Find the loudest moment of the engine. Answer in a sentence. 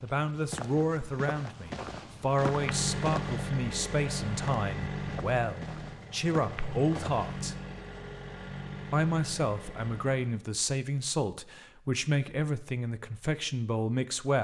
The volume of the engine peaks at 3 seconds.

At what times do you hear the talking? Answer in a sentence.
The talking can be heard from 0.0 to 7.5 s and from 8.9 to 14.3 s.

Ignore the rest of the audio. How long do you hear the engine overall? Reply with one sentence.
The engine can be heard for 8 seconds in total.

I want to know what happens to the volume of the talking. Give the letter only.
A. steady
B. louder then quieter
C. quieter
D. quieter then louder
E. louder
A.